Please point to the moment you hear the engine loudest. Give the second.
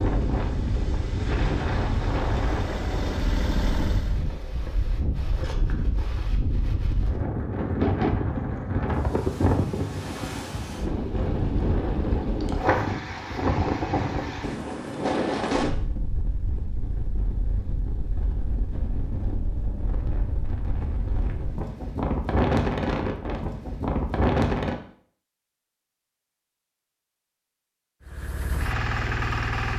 29 s.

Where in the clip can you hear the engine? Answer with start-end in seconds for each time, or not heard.
0.0-4.2, 28.0-29.7.